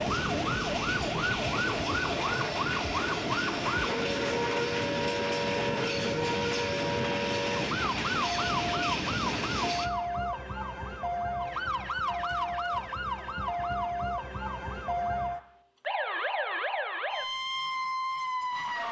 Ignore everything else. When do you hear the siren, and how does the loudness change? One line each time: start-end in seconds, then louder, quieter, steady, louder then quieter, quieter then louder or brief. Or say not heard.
0.0-18.8 steady.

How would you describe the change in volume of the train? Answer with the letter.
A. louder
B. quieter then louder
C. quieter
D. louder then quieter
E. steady
E.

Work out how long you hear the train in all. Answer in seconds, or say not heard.
10 s.